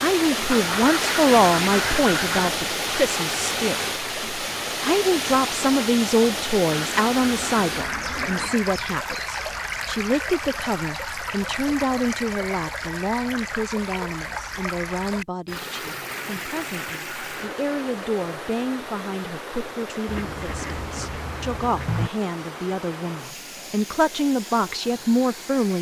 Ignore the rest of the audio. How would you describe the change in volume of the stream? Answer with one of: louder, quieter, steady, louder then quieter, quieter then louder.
quieter.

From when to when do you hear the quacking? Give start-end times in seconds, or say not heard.
0.5-2.5, 6.5-8.6, 15.6-17.6, 20.1-22.1.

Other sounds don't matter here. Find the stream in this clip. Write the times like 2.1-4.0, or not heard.
0.0-25.7.